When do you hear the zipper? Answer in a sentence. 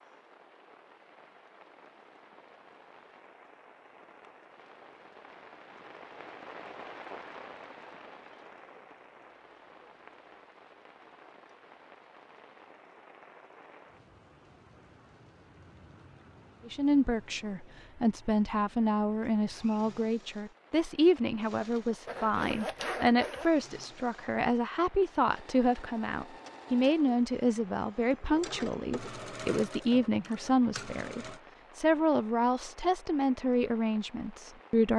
The zipper can be heard from 22.1 to 23.5 s.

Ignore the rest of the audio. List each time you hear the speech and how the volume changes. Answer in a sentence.
The speech can be heard from 16.6 to 34.9 s, at a steady volume.